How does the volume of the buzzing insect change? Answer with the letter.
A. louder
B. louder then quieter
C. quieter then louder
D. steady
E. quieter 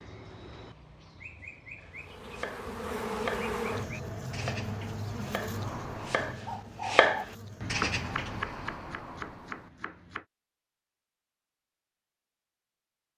E.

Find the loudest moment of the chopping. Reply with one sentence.
The volume of the chopping peaks at 7 seconds.